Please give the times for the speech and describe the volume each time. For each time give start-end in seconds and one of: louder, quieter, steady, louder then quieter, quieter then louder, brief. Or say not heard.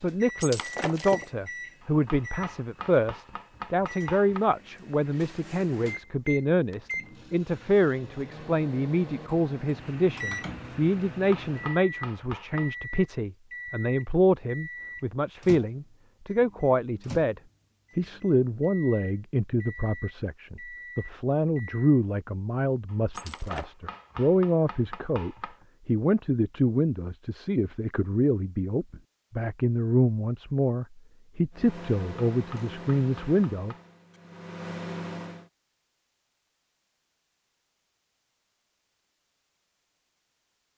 0.0-33.8 steady.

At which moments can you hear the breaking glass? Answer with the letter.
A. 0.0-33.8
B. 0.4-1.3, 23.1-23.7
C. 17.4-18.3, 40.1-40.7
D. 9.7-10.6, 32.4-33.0
B.